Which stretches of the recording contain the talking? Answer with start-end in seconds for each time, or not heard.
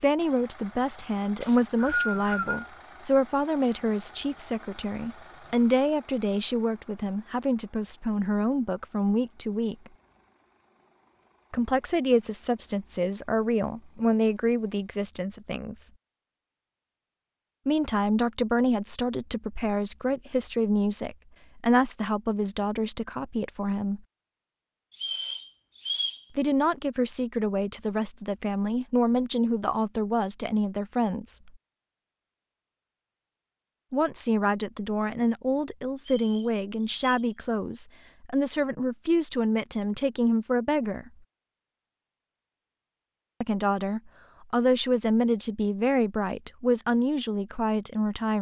0.0-9.9, 11.5-15.9, 17.6-24.0, 26.4-31.5, 33.9-41.1, 43.4-48.3.